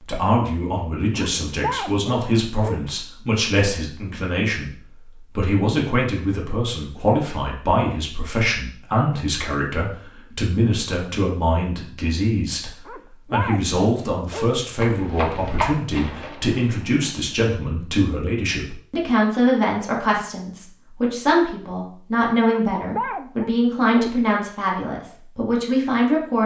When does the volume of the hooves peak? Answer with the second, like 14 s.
16 s.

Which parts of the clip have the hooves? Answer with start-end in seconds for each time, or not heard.
14.7-17.3.